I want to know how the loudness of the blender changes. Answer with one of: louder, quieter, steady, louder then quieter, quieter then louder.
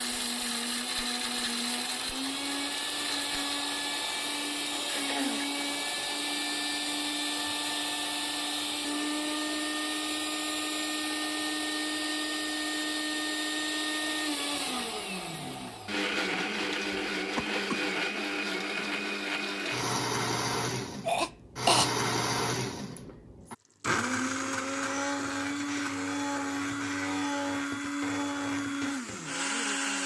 steady.